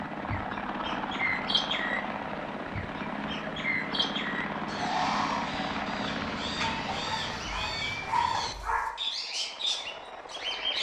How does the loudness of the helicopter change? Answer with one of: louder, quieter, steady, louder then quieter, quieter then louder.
quieter.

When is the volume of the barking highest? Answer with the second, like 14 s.
8 s.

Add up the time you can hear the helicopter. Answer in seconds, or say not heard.
11 s.